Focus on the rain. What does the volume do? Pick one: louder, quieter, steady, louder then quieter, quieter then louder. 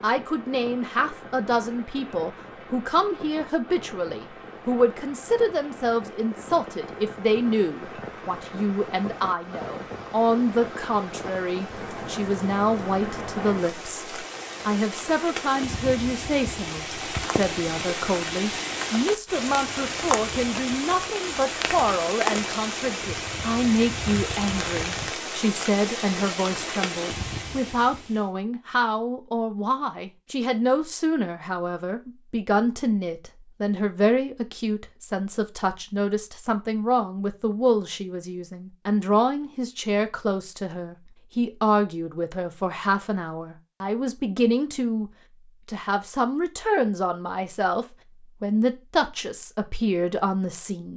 louder.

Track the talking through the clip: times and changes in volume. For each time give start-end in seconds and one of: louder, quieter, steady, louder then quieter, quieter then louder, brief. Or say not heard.
0.0-50.9 steady.